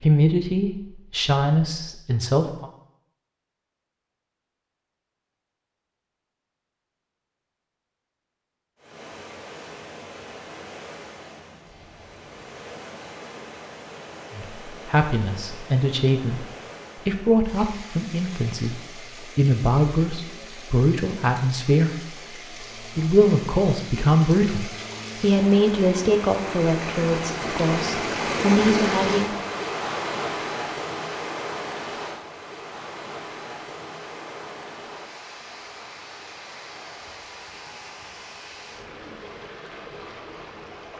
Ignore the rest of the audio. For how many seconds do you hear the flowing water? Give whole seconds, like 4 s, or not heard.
32 s.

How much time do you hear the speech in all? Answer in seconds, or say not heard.
18 s.